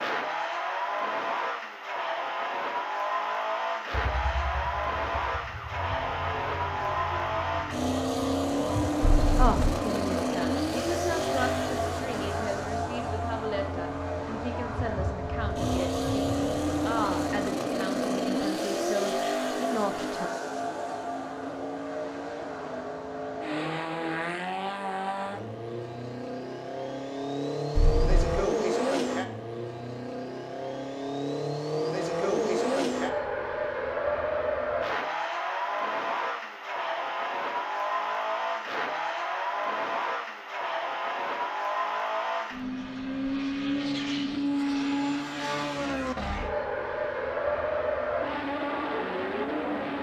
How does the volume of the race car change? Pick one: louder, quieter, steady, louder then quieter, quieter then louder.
steady.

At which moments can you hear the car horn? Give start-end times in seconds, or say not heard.
9.0-9.8, 27.8-28.4.